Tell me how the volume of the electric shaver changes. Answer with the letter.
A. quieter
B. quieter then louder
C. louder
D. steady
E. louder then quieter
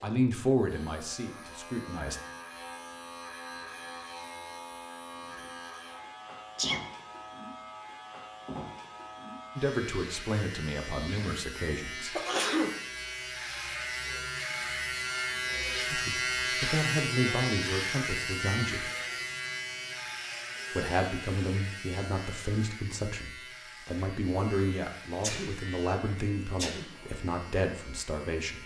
E.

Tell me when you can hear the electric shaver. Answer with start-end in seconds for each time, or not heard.
0.0-28.6.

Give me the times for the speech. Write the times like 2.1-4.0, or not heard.
0.0-2.2, 9.6-12.2, 15.9-18.9, 20.7-28.6.